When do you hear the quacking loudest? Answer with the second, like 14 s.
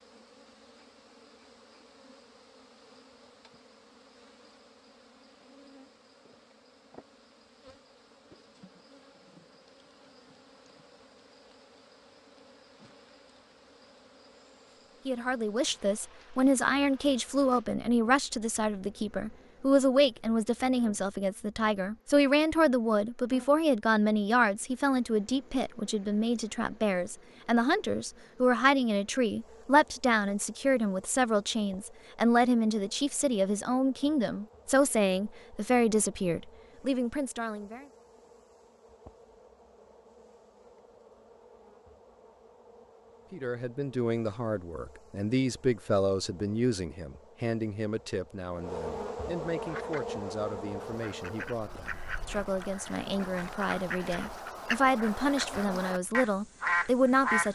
57 s.